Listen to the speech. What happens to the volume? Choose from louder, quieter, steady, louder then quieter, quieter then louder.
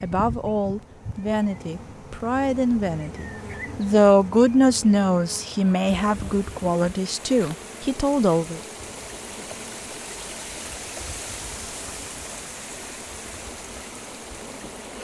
louder then quieter.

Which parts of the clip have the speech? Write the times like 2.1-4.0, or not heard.
0.0-8.6.